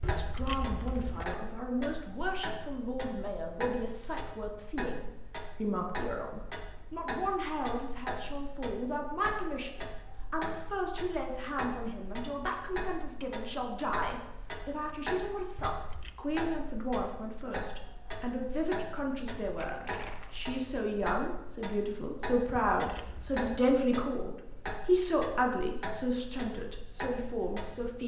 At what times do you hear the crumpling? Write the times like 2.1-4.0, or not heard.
19.6-20.4.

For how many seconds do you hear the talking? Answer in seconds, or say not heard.
28 s.